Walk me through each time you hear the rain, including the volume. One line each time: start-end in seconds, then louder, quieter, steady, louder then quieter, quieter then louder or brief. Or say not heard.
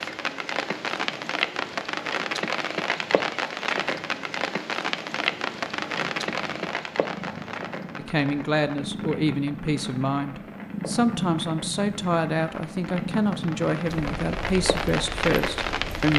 0.0-16.1 quieter then louder.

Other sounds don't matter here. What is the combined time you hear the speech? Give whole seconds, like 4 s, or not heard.
8 s.